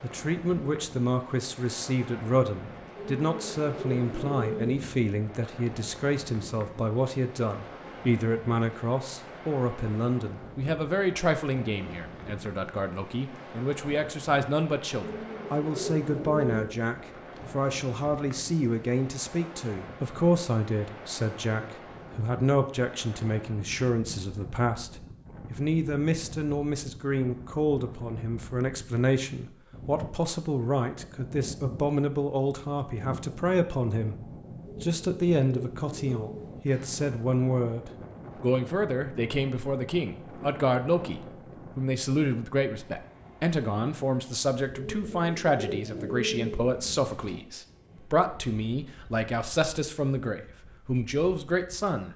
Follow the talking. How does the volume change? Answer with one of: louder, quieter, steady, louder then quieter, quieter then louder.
steady.